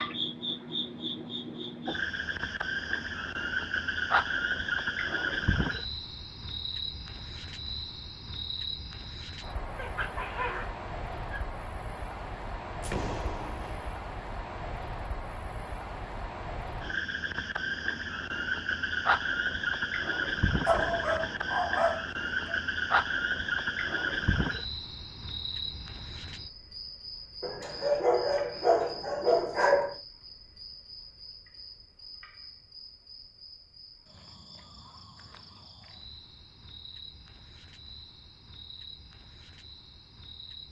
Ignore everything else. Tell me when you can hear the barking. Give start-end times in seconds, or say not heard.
9.8-11.4, 20.6-22.6, 27.4-29.9.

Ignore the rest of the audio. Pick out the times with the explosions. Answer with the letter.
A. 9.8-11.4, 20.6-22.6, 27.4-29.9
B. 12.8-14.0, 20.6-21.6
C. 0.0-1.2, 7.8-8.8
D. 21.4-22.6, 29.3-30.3
B.